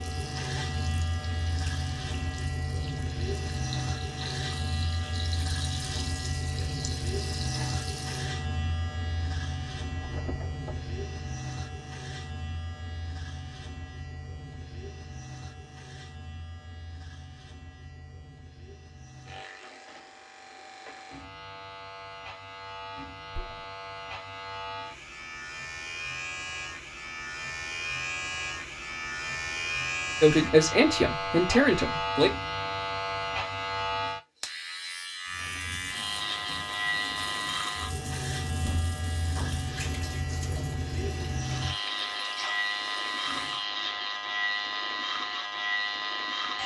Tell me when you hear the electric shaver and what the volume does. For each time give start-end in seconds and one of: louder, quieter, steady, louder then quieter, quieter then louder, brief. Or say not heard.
0.0-46.6 quieter then louder.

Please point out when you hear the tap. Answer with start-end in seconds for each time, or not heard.
0.0-8.3, 35.2-43.6.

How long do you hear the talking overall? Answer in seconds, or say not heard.
2 s.